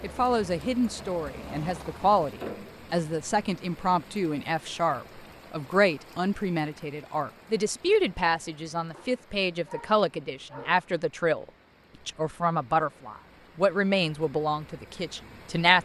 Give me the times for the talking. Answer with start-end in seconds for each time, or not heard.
0.0-11.4, 12.1-15.8.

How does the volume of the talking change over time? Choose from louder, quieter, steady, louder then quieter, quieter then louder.
steady.